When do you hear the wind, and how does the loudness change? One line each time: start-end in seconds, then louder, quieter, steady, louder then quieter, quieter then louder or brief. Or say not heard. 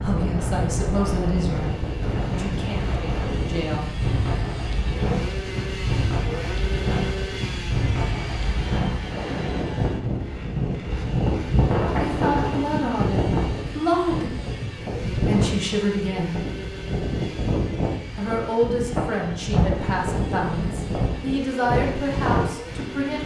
0.0-23.2 steady.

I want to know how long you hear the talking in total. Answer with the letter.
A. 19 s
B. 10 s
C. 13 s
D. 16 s
C.